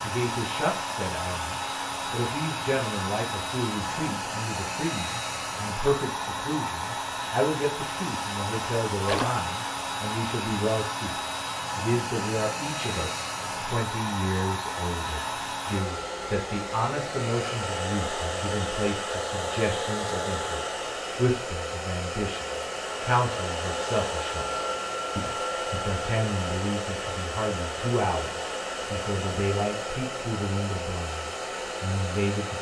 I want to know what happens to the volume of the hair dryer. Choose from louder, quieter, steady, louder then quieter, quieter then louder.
steady.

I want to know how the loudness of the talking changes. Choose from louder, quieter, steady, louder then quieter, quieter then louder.
steady.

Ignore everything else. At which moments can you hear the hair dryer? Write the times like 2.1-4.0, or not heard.
0.0-32.5.